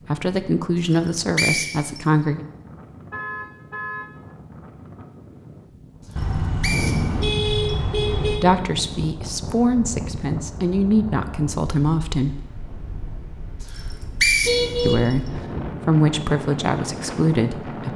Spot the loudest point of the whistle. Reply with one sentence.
The volume of the whistle peaks at 14 seconds.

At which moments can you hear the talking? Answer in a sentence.
You can hear the talking from 0.1 to 2.5 s, from 8.3 to 12.4 s and from 14.8 to 17.9 s.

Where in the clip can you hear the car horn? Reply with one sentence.
The car horn can be heard from 3.1 to 4.1 s, from 6.2 to 8.4 s and from 14.4 to 15.7 s.